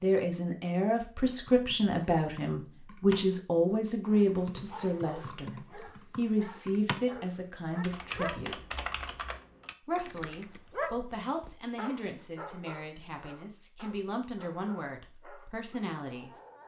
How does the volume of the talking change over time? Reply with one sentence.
The loudness of the talking goes down.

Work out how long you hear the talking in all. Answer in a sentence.
The talking can be heard for 15 seconds in total.